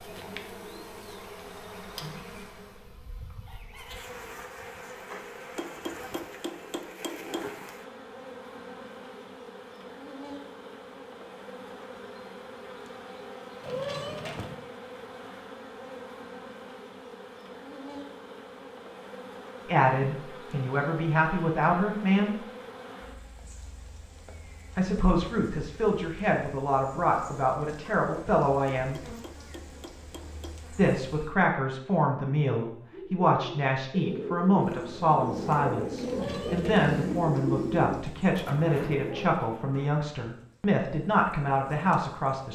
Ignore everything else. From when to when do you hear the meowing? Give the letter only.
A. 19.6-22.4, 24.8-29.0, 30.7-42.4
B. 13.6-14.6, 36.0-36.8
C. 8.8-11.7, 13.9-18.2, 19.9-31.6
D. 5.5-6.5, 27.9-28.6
B.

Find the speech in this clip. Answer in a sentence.
You can hear the speech from 19.6 to 22.4 s, from 24.8 to 29.0 s and from 30.7 to 42.4 s.